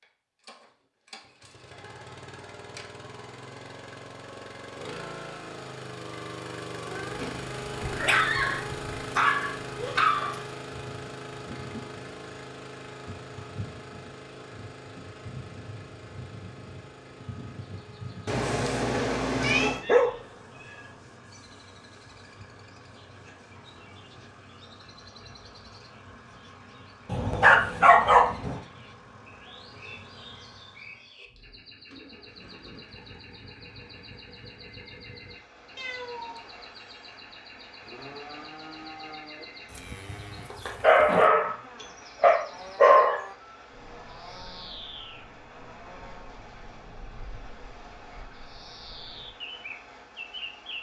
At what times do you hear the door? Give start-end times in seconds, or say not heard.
not heard.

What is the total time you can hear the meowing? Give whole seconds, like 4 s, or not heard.
4 s.